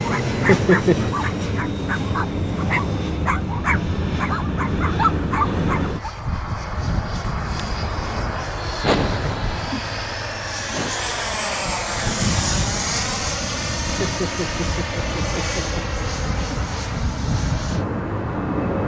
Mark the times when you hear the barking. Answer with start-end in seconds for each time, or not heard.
0.0-6.1.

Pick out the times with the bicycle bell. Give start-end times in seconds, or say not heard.
not heard.